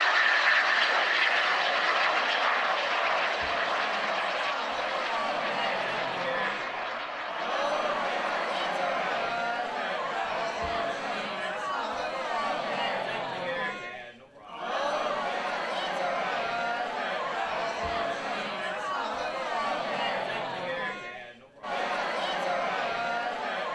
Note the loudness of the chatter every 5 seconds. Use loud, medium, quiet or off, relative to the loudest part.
medium, loud, loud, loud, loud.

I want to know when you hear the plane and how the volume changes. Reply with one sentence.
You can hear the plane from 0.0 to 9.1 s, getting quieter.